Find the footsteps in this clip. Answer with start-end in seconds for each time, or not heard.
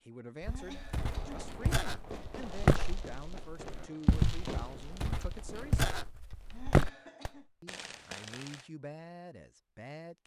0.4-6.9.